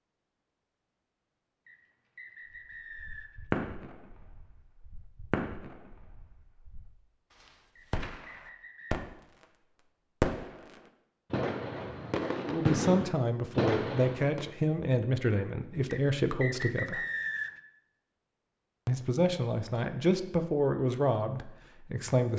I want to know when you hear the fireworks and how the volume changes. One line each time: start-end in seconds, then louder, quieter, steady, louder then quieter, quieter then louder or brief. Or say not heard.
2.9-9.4 quieter then louder
10.2-14.5 louder.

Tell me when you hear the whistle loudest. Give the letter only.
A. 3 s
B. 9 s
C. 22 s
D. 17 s
D.